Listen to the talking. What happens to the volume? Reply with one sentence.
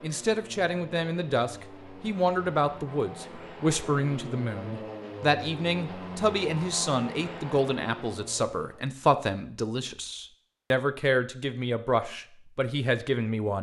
The volume of the talking stays about the same.